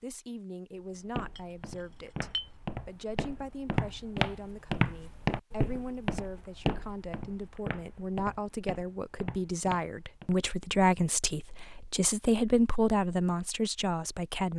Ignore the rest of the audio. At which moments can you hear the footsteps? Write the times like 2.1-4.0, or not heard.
0.8-10.3.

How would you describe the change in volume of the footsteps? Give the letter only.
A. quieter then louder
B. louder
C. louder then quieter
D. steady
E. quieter
C.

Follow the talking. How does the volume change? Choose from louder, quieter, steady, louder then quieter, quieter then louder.
louder.